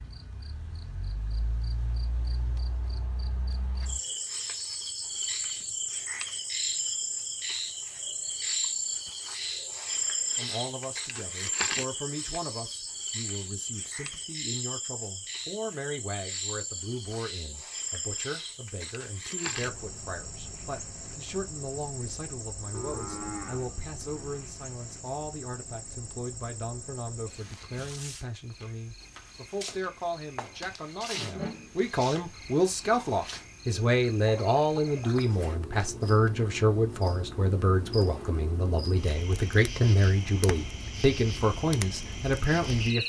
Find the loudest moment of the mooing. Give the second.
23 s.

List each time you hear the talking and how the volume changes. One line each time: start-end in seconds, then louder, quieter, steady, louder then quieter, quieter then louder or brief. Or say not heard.
10.3-43.0 louder.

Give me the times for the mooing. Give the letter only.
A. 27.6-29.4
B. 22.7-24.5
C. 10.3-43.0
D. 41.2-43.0
B.